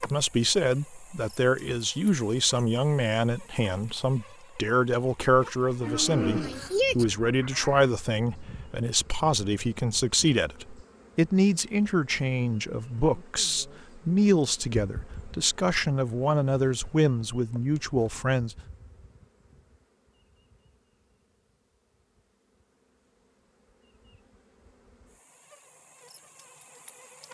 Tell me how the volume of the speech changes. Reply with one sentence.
The loudness of the speech stays about the same.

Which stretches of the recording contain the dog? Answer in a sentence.
The dog can't be heard in this clip.